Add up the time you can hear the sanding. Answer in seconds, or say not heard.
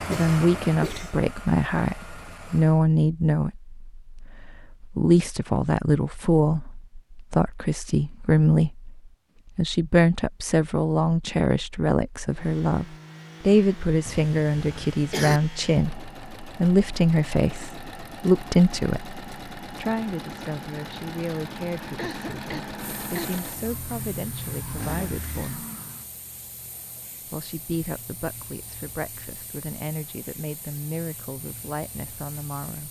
not heard.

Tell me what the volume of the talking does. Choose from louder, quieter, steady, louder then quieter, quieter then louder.
quieter.